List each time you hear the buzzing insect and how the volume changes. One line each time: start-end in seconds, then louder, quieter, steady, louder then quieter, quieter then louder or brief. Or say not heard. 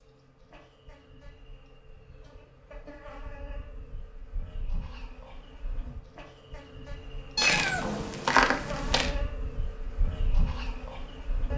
0.0-11.5 louder.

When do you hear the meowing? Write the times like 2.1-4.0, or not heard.
7.3-9.1.